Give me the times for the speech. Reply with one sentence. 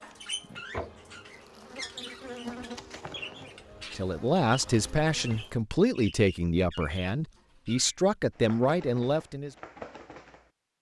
The speech can be heard from 4.0 to 9.5 s.